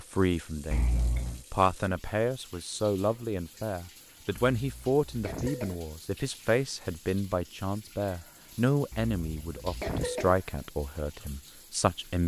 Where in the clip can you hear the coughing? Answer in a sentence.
The coughing can be heard from 0.7 to 1.4 s, from 4.5 to 5.8 s and from 8.9 to 10.3 s.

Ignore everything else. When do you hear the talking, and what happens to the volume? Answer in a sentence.
The talking can be heard from 0.0 to 12.2 s, at a steady volume.